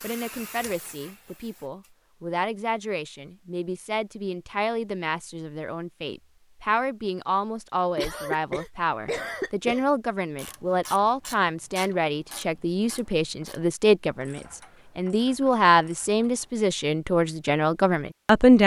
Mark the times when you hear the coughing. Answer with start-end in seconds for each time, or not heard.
8.0-9.8.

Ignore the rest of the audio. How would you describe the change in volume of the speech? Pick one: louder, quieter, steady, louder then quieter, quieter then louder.
louder.